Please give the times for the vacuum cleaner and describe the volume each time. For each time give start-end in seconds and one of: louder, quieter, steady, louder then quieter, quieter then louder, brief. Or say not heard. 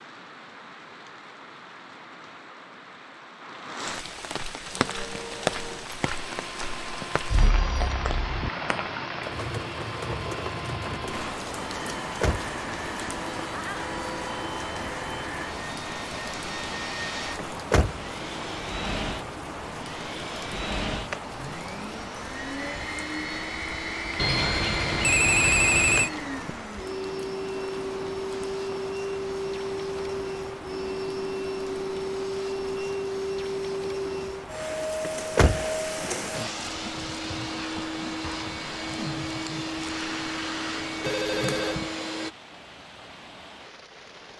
4.7-42.3 louder.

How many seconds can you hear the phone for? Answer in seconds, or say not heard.
4 s.